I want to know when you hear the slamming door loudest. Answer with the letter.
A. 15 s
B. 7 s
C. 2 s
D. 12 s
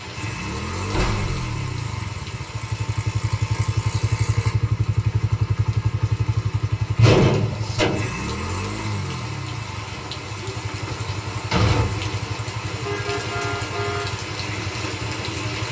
B.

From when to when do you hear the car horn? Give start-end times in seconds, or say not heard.
12.8-14.2.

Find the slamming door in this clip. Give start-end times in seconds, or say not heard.
0.9-1.4, 7.0-8.2, 10.8-12.2.